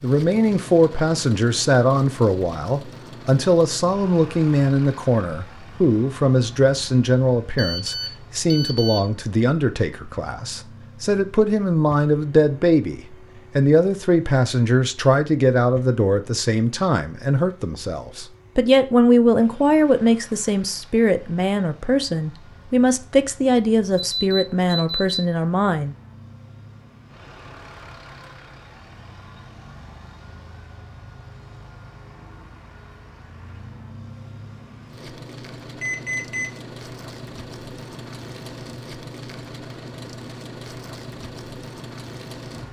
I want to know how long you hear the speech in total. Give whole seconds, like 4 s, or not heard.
26 s.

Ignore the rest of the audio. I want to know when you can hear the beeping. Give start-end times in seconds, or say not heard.
7.5-9.0, 24.1-25.1, 35.8-36.5.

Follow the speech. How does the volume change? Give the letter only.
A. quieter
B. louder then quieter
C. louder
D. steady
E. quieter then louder
D.